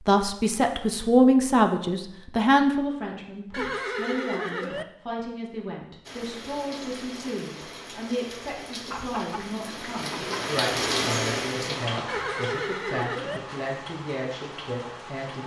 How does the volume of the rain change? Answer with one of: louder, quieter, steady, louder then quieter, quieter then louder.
louder then quieter.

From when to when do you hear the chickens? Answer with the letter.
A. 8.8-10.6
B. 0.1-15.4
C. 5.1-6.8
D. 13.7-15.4
A.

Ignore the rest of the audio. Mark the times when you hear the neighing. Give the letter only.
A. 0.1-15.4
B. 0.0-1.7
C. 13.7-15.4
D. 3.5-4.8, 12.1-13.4
D.